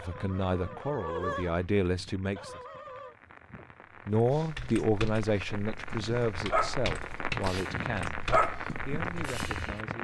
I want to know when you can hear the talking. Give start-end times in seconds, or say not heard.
0.0-2.6, 4.0-9.9.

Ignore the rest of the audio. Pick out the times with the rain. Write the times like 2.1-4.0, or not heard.
0.0-9.9.